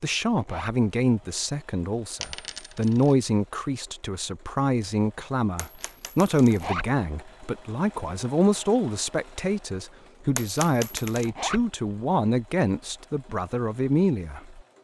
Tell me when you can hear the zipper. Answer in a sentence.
The zipper can be heard from 0.3 to 0.8 s, from 6.5 to 6.9 s and from 11.2 to 11.7 s.